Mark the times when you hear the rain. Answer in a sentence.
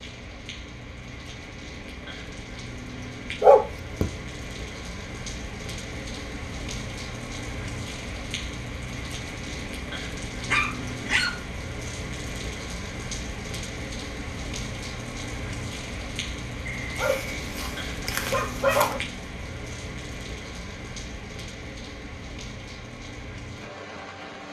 You can hear the rain from 0.0 to 24.4 s.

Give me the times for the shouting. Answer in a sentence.
The shouting can't be heard in this clip.